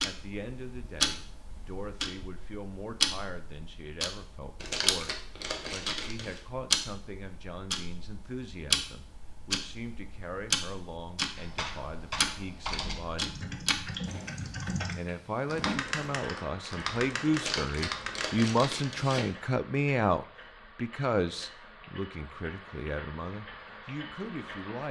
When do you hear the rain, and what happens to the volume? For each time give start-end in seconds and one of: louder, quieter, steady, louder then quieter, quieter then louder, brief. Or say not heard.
not heard.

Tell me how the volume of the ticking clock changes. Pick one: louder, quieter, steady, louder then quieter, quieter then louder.
quieter.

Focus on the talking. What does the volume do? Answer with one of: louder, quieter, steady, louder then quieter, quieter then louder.
louder.